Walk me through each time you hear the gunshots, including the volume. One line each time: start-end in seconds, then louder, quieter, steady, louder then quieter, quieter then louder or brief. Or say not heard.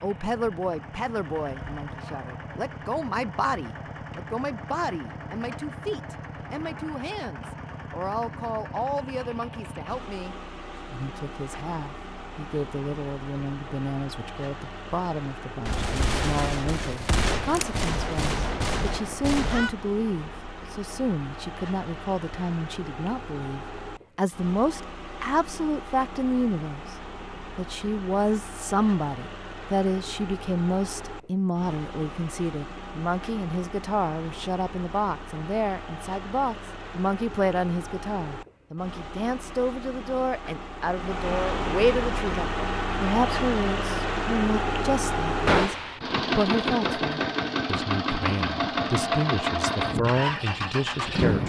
15.7-19.7 steady
45.5-46.0 brief.